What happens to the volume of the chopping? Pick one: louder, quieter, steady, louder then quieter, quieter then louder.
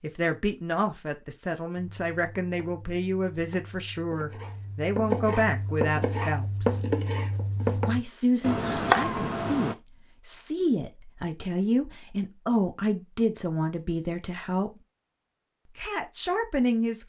louder.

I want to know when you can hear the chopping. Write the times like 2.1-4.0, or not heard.
1.8-9.8.